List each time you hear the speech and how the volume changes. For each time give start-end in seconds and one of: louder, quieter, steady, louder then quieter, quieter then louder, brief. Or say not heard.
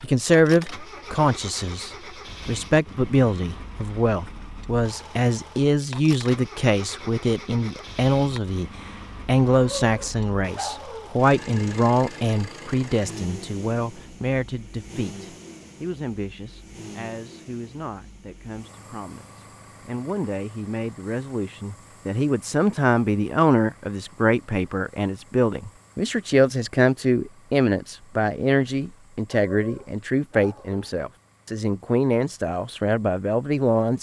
0.0-33.9 quieter then louder.